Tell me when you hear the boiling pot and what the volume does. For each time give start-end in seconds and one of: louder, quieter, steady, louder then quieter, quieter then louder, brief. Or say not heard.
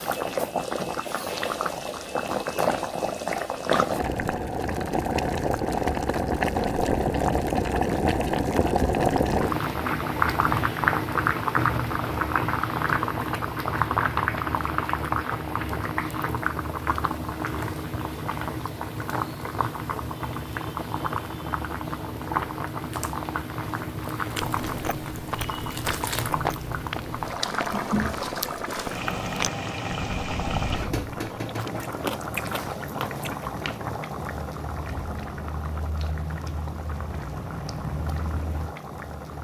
0.0-39.3 quieter.